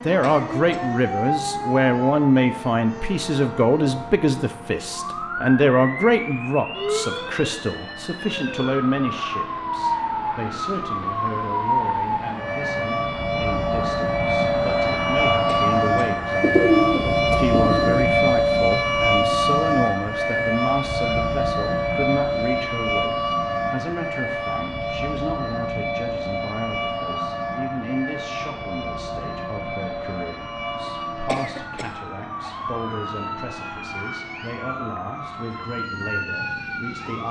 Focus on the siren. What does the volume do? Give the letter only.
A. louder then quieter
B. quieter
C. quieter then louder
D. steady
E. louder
A.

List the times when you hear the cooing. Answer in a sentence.
The cooing can be heard from 16.4 to 18.1 s.